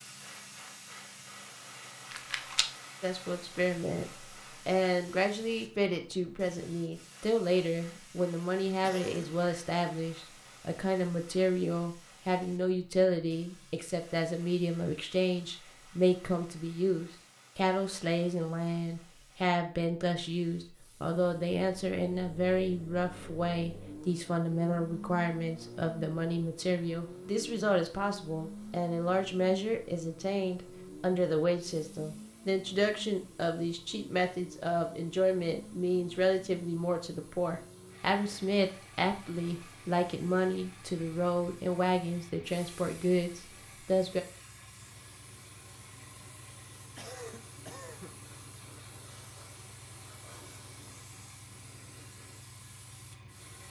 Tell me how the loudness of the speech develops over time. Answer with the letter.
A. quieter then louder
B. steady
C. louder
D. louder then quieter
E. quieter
B.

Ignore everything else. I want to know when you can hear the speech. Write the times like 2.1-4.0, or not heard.
3.0-44.2.